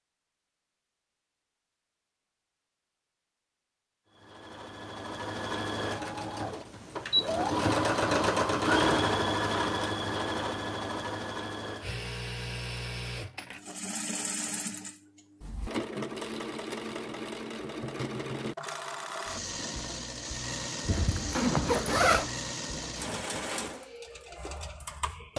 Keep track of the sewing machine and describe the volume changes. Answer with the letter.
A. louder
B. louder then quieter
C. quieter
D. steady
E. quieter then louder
C.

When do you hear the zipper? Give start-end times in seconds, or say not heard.
20.9-22.3.